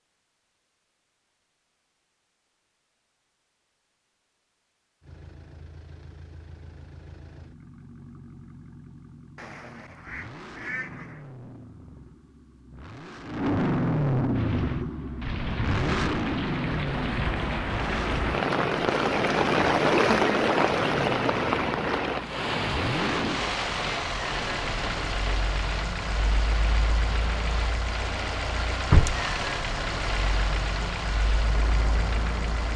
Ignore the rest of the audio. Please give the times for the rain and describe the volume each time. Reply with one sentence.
You can hear the rain from 14.3 to 32.7 s, getting louder then quieter.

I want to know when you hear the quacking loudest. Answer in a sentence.
The volume of the quacking peaks at 11 seconds.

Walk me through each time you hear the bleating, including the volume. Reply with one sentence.
The bleating can't be heard in this clip.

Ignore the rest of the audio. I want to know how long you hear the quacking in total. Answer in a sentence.
The quacking can be heard for 2 seconds in total.